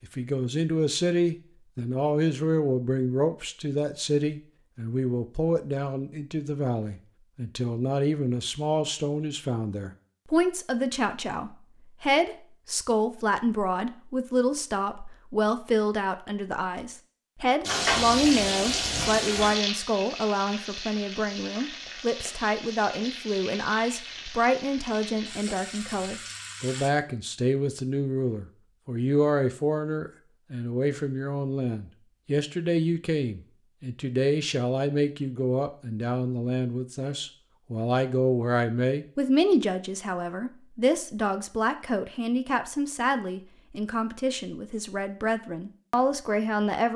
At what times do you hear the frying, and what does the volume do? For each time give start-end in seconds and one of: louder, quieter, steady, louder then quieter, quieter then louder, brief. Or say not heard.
17.6-26.9 quieter.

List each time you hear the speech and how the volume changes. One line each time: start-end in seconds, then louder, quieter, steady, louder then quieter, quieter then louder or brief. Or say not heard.
0.0-46.9 steady.